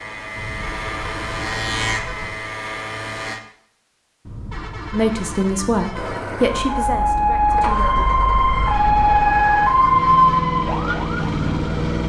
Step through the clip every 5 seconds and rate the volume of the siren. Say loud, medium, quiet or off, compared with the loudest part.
off, loud, loud.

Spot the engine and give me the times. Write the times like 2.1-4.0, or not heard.
0.0-3.4, 5.9-12.0.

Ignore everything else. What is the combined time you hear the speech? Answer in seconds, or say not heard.
3 s.